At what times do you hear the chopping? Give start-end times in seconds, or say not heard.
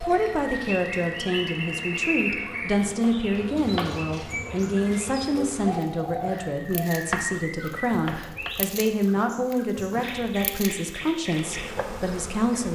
2.8-4.0, 7.0-8.6.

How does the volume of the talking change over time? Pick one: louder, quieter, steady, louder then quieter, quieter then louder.
steady.